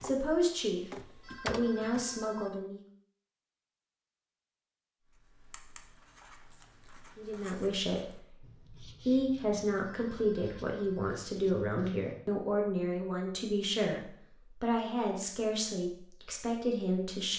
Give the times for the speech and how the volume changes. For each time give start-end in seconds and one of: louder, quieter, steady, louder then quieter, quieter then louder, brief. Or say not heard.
0.0-2.8 brief
7.2-17.3 steady.